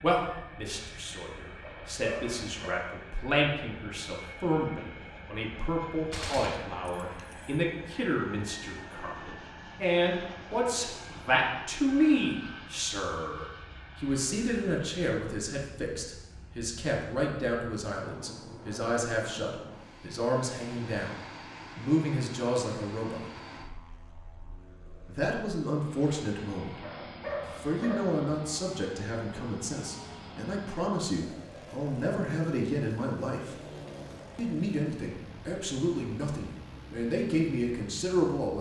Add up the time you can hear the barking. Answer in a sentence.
You can hear the barking for 3 seconds altogether.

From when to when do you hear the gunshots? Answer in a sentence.
The gunshots can be heard from 6.1 to 7.6 s.